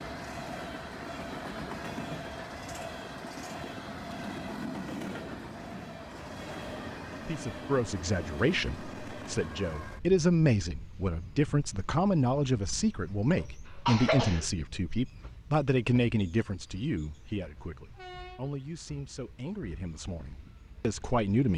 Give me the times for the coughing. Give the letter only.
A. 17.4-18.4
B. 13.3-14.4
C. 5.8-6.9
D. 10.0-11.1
B.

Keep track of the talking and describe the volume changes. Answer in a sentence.
The volume of the talking goes down.